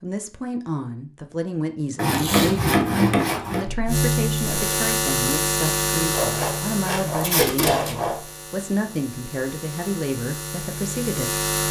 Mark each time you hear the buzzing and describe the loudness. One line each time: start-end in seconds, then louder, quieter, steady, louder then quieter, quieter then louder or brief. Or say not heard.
3.6-11.6 quieter then louder.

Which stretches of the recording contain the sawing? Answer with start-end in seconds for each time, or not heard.
1.9-3.6, 6.1-8.2.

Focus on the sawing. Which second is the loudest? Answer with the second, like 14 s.
3 s.